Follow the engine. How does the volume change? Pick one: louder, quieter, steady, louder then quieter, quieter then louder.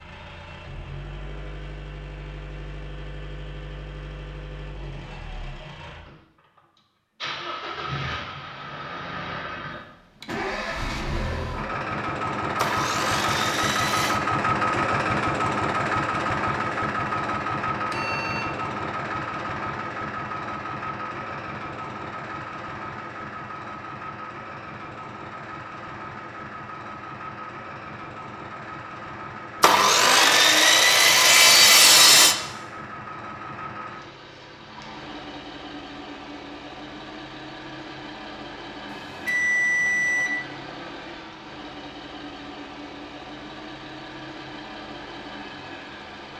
louder then quieter.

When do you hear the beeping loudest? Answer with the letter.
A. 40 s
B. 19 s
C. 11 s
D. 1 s
A.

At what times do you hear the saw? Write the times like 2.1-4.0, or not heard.
12.6-14.2, 29.6-32.4.